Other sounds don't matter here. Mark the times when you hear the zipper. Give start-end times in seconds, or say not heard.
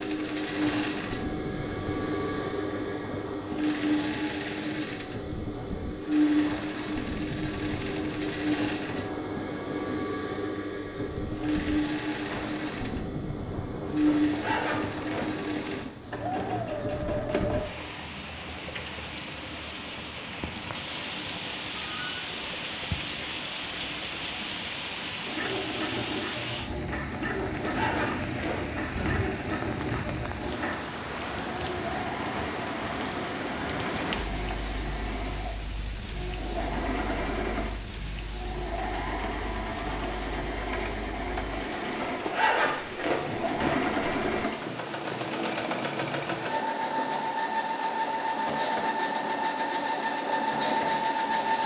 14.1-15.3, 27.6-29.2, 42.0-43.8.